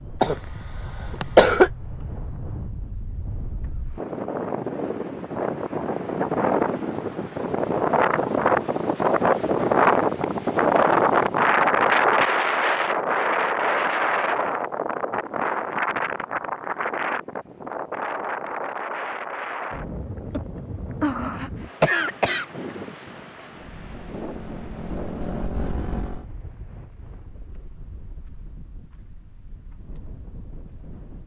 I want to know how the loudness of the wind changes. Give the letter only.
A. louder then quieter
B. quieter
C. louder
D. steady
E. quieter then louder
A.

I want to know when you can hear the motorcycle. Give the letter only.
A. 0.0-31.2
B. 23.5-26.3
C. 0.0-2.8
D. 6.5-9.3
B.